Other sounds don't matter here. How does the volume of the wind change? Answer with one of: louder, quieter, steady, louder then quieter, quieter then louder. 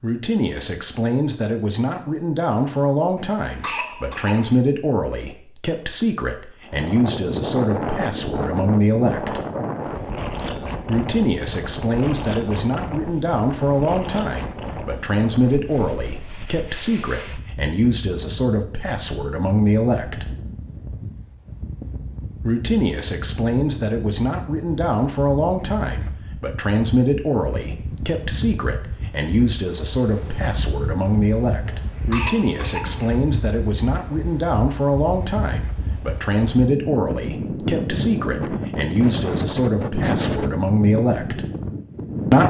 quieter then louder.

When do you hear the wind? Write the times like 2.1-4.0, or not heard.
6.7-42.4.